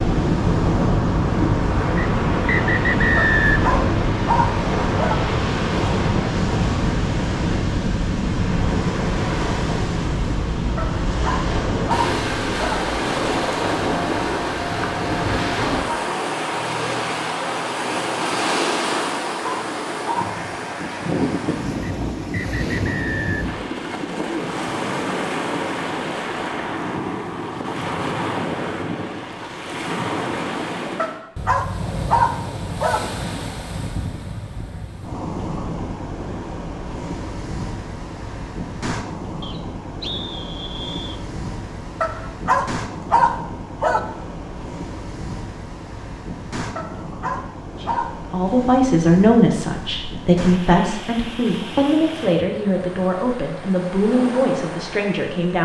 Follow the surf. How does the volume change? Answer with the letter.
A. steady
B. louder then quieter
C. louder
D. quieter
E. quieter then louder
D.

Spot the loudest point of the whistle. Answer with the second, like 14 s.
3 s.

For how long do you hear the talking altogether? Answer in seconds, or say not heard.
8 s.